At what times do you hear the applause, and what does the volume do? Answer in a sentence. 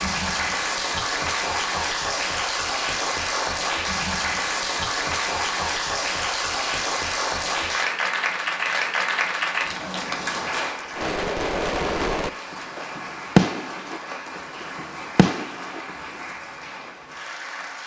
You can hear the applause from 0.0 to 17.8 s, getting quieter.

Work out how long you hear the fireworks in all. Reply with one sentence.
The fireworks can be heard for 5 seconds in total.